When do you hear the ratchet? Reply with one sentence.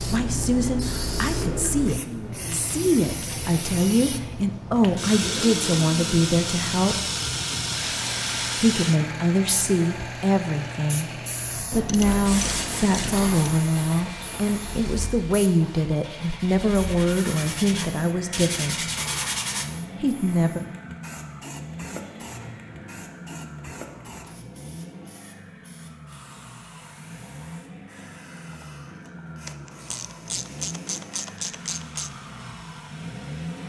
You can hear the ratchet from 11.7 to 13.4 s and from 29.4 to 32.1 s.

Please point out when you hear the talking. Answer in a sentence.
The talking can be heard from 0.0 to 7.0 s, from 8.6 to 18.8 s and from 20.0 to 20.6 s.